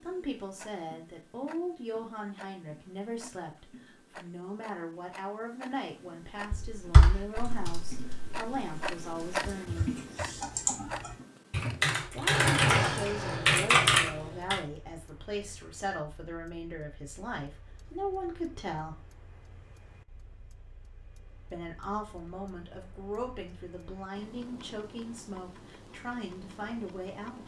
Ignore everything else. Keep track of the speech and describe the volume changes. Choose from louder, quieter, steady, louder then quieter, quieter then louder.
steady.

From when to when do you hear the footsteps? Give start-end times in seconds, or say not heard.
not heard.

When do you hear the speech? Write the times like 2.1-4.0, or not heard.
0.0-10.0, 12.1-18.9, 21.5-27.4.